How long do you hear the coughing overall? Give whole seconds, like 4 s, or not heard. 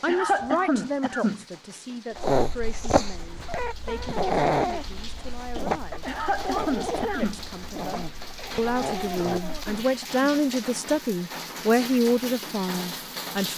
4 s.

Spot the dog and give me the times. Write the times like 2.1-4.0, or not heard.
2.1-9.8.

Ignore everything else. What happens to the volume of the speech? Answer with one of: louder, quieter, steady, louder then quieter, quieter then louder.
quieter then louder.